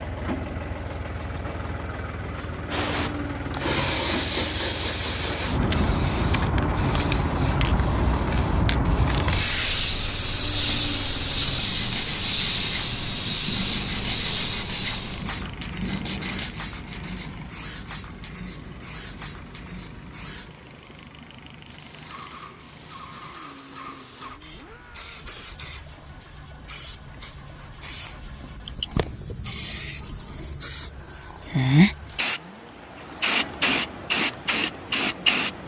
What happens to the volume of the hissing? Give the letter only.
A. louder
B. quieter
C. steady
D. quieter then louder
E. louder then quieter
D.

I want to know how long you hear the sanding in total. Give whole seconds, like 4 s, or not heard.
6 s.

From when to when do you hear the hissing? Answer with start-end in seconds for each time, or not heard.
2.7-35.6.